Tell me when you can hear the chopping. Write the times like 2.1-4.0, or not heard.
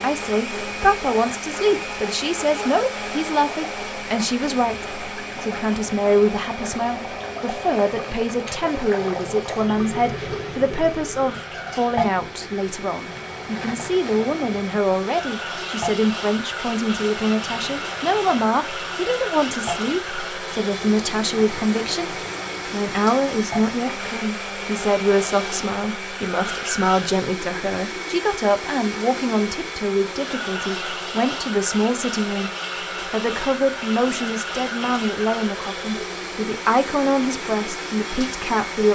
not heard.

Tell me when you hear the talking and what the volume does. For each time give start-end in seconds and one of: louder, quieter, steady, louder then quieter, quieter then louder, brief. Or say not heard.
0.0-38.9 steady.